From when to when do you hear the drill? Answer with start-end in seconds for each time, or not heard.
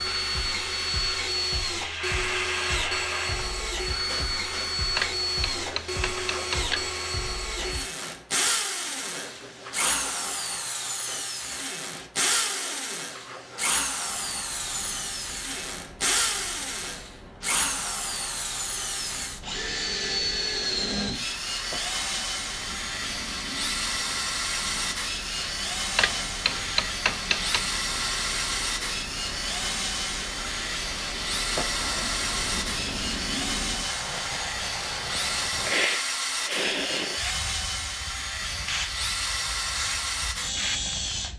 0.0-41.3.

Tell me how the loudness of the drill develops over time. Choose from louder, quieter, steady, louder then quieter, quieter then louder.
steady.